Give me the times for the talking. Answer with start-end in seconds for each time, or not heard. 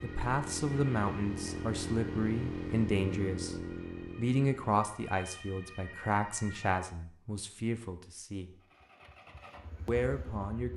0.0-3.5, 4.2-8.6, 9.8-10.7.